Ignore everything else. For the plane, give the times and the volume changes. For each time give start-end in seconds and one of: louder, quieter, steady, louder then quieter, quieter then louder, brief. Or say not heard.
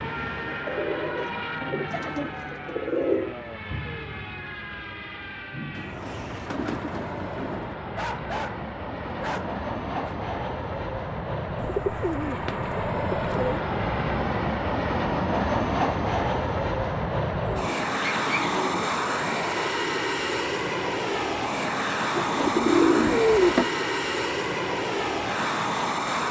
0.0-26.2 louder.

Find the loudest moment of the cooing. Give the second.
23 s.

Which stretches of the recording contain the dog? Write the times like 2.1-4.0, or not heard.
8.0-10.2.